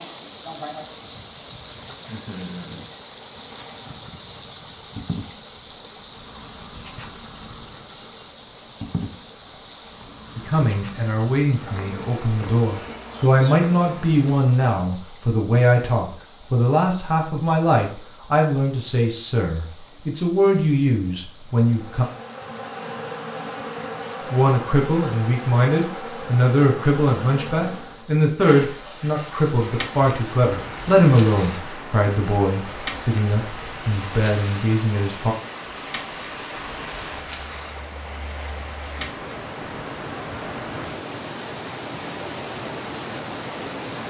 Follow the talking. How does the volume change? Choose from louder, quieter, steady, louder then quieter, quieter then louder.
steady.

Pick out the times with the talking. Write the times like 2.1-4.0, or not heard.
10.3-22.1, 24.3-35.4.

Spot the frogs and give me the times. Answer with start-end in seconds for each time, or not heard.
not heard.